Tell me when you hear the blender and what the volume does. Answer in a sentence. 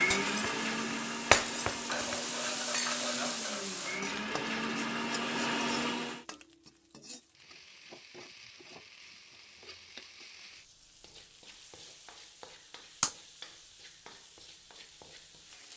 You can hear the blender from 0.0 to 6.2 s, getting quieter then louder.